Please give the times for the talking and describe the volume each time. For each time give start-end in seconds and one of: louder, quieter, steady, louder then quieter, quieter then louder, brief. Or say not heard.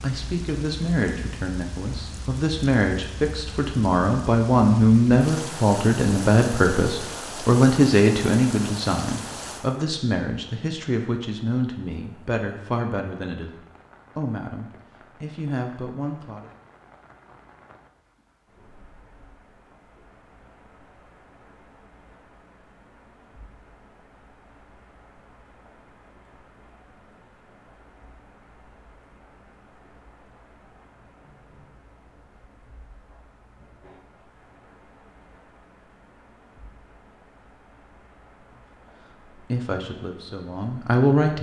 0.0-16.5 louder then quieter
39.4-41.3 brief.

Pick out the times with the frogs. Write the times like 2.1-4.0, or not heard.
not heard.